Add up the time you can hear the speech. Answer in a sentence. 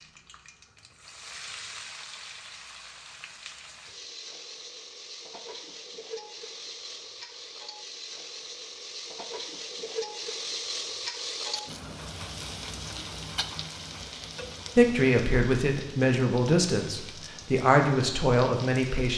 You can hear the speech for 4 seconds altogether.